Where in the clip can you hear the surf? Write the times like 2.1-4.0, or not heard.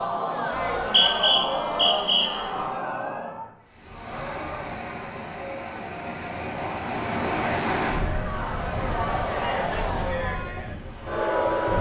3.7-11.7.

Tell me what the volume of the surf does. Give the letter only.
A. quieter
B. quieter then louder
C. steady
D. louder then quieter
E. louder
D.